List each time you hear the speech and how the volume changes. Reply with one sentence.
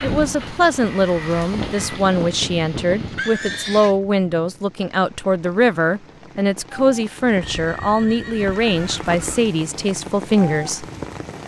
You can hear the speech from 0.0 to 10.8 s, at a steady volume.